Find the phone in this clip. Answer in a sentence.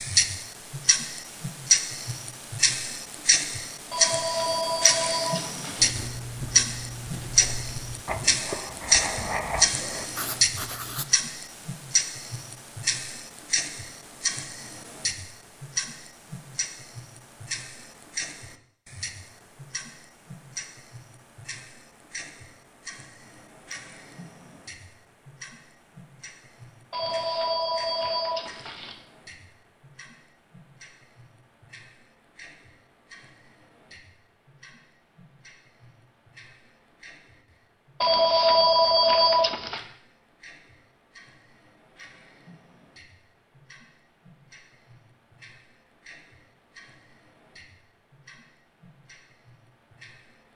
The phone can be heard from 3.9 to 6.0 s, from 26.9 to 28.9 s and from 38.0 to 39.8 s.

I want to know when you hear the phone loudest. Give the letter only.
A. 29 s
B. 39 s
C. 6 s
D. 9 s
B.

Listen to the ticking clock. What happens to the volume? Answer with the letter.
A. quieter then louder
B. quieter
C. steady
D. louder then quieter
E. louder
B.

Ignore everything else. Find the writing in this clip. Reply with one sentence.
You can hear the writing from 5.8 to 11.1 s.